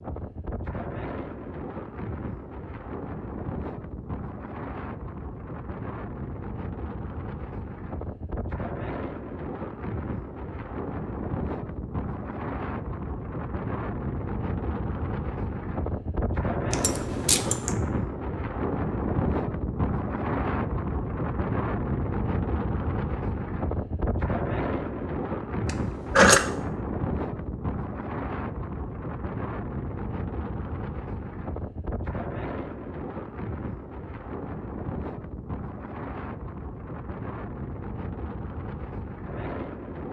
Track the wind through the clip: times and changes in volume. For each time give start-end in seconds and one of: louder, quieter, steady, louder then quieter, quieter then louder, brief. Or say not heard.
0.0-40.0 louder then quieter.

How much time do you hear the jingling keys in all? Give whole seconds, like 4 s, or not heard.
2 s.